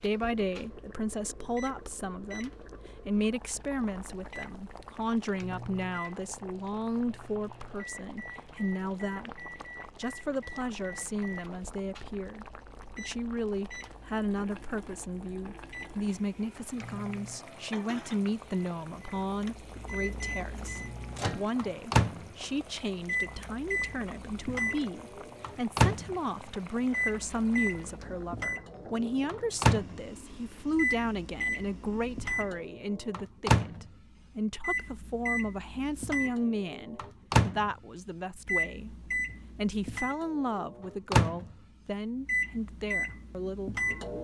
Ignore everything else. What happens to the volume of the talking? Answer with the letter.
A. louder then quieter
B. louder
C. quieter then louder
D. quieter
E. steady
E.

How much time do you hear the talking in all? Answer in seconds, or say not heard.
44 s.